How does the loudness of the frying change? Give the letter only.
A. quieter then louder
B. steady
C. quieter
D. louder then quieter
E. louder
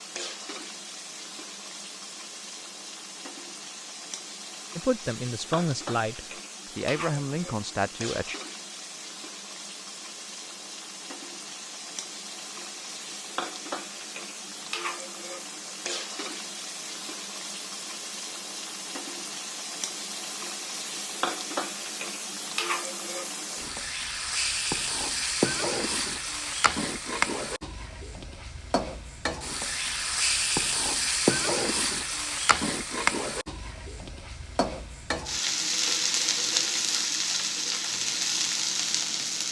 E.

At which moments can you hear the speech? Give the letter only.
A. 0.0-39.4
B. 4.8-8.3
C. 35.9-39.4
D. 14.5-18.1
B.